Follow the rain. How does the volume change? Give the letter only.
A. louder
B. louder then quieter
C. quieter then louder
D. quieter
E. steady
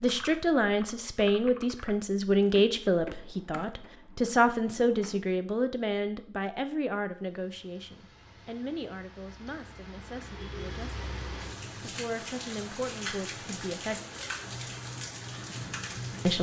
A.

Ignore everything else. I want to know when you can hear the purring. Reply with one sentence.
You can't hear the purring here.